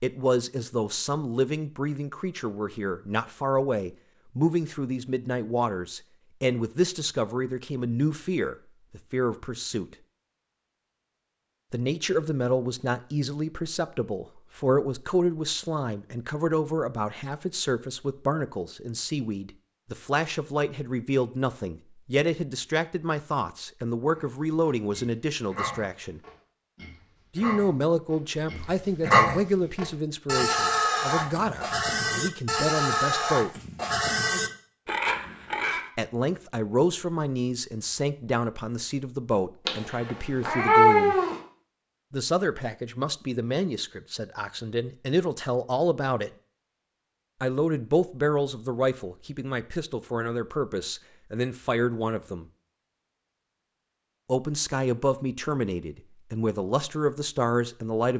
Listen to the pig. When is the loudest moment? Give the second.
29 s.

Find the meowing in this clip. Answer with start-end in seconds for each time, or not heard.
39.6-41.4.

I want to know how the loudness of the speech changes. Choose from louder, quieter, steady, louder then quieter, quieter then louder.
steady.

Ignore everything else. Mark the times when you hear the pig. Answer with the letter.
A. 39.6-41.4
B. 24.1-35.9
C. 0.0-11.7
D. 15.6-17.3
B.